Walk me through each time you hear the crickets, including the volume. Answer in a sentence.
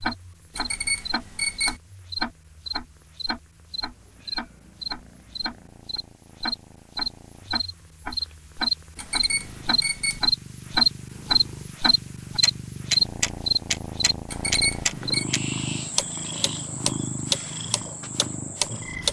You can hear the crickets from 0.0 to 19.0 s, getting louder then quieter.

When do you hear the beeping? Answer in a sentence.
The beeping can be heard from 0.6 to 1.8 s, from 8.9 to 10.2 s and from 14.2 to 15.2 s.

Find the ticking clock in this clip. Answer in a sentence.
The ticking clock can be heard from 0.0 to 19.0 s.